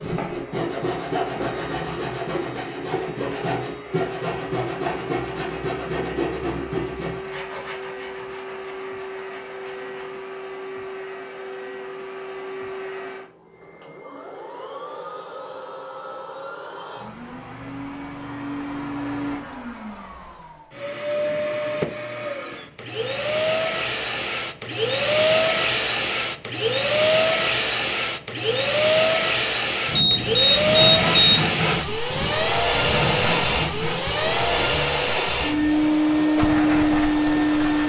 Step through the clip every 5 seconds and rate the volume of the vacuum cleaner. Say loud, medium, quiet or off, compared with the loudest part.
quiet, quiet, quiet, quiet, medium, loud, loud, loud.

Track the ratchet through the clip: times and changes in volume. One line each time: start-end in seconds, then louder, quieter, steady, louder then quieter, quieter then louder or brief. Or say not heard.
not heard.